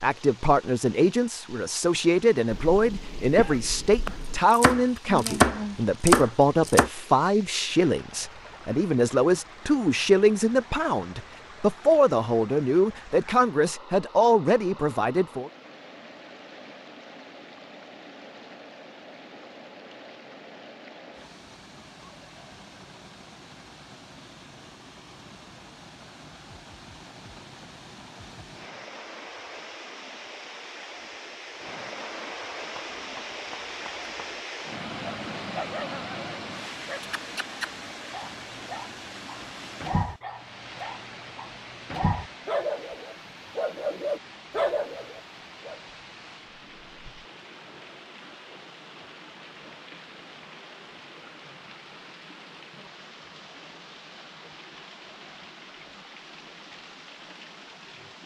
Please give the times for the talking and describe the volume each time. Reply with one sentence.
You can hear the talking from 0.0 to 15.5 s, at a steady volume.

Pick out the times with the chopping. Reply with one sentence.
The chopping can be heard from 4.0 to 6.9 s and from 32.8 to 34.1 s.